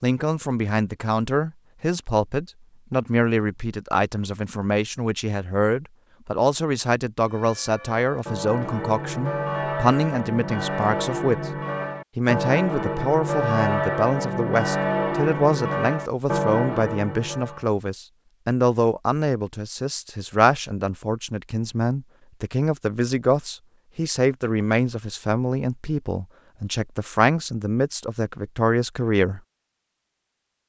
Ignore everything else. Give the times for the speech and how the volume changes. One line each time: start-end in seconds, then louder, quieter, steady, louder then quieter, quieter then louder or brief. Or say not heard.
0.0-11.5 steady
12.2-29.4 steady.